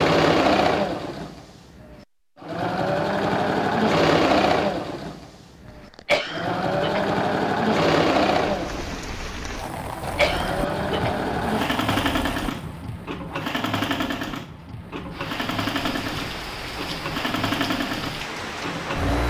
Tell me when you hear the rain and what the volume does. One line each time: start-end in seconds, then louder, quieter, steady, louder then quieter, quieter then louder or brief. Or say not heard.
8.4-19.2 quieter then louder.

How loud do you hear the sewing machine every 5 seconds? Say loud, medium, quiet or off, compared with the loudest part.
loud, loud, medium, medium.